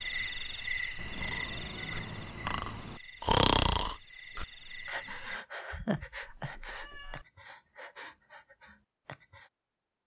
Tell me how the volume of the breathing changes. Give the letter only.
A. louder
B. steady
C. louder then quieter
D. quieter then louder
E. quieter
C.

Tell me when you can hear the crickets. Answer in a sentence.
You can hear the crickets from 0.0 to 5.4 s.